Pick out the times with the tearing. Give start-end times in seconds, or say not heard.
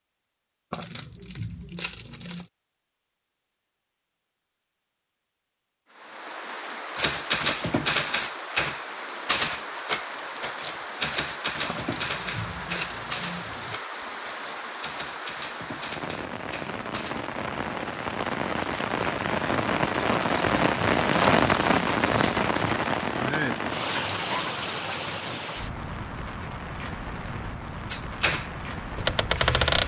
0.7-2.5, 11.7-13.8, 20.1-22.8.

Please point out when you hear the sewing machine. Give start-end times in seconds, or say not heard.
not heard.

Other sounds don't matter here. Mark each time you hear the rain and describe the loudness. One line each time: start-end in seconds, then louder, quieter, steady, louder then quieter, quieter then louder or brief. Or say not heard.
5.9-29.8 louder then quieter.